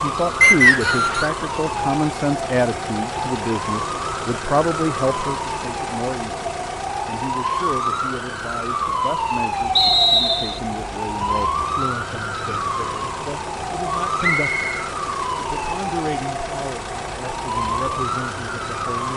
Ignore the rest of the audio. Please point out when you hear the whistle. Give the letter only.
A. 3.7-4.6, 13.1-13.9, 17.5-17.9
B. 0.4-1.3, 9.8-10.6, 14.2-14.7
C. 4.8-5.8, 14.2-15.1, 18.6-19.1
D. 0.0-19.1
B.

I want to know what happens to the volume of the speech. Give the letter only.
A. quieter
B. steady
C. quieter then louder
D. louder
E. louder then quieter
A.